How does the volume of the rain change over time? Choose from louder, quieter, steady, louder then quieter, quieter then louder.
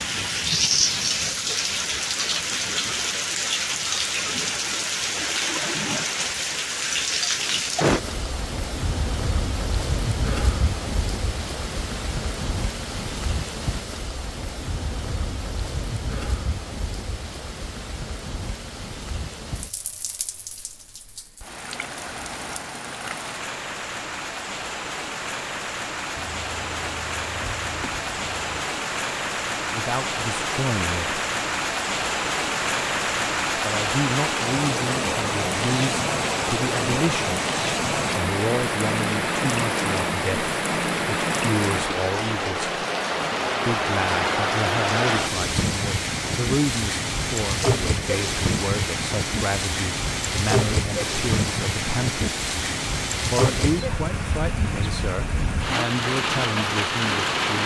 quieter then louder.